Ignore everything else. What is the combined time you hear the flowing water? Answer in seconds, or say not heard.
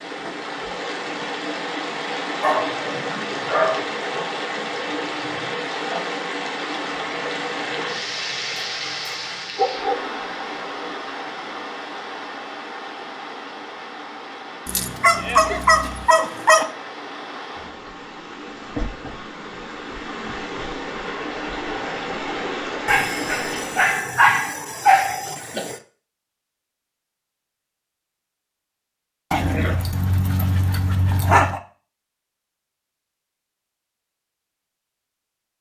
24 s.